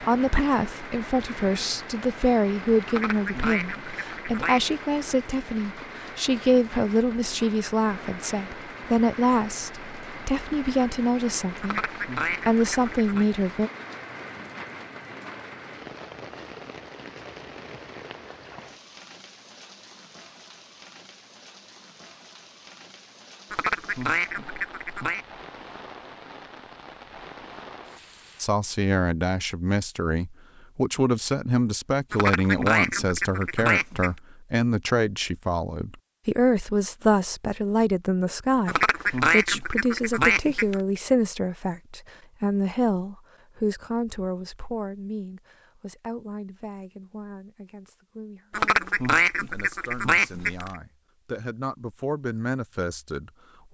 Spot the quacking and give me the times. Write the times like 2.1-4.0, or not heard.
2.9-4.6, 11.6-13.2, 23.5-25.2, 32.1-34.1, 38.6-40.8, 48.5-50.8.